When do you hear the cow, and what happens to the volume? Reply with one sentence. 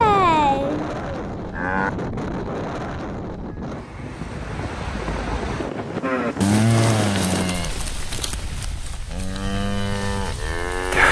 You can hear the cow briefly from 0.0 to 1.9 s; and from 6.0 to 11.0 s, getting quieter then louder.